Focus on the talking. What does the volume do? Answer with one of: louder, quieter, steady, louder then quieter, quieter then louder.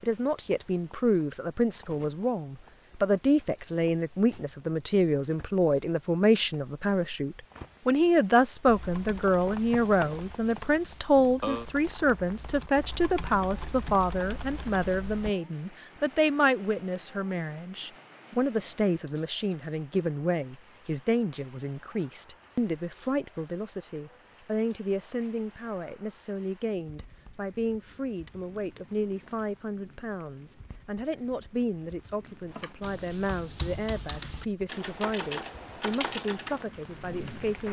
quieter.